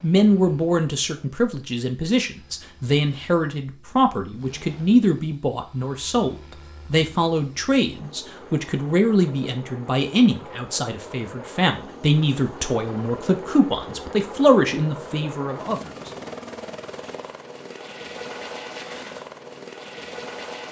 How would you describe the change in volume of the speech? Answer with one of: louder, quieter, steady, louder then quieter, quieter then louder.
steady.